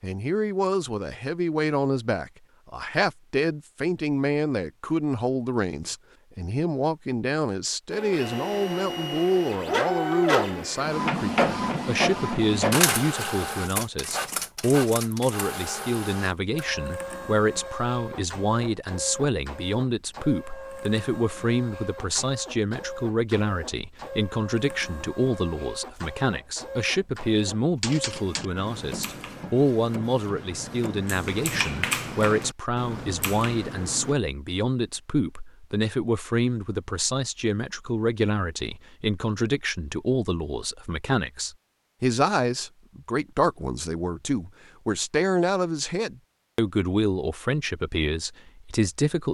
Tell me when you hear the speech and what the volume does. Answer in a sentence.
The speech can be heard from 0.0 to 49.2 s, at a steady volume.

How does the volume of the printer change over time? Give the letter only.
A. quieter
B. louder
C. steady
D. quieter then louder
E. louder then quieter
A.